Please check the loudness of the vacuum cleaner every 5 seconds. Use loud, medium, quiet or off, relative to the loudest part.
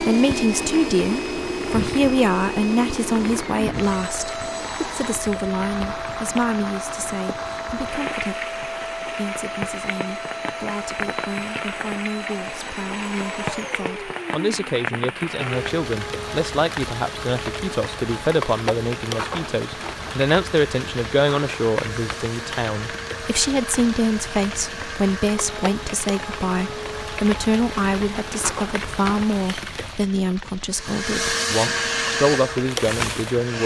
loud, medium, medium, medium, medium, medium, loud.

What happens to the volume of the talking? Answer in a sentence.
The volume of the talking goes down, then up.